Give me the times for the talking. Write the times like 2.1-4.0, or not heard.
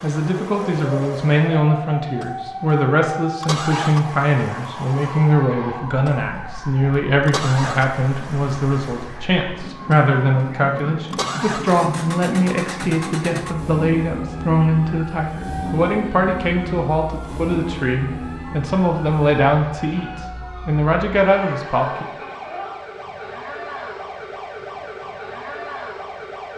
0.0-22.1.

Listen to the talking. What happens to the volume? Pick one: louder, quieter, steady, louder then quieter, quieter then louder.
steady.